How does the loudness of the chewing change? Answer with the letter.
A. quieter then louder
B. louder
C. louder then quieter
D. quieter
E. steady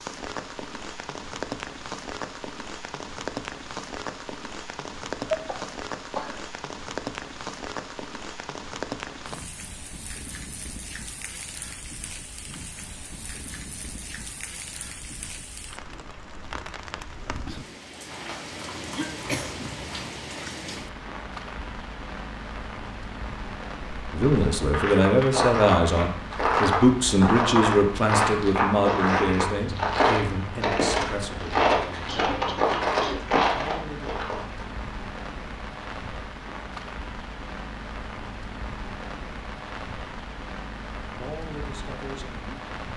E.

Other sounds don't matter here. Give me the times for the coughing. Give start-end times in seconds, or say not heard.
5.3-6.5, 18.9-19.7, 32.0-33.2.